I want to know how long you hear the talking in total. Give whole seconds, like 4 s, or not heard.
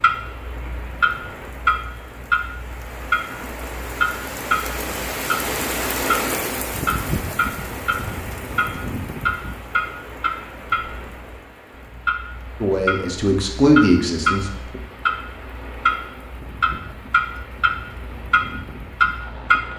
2 s.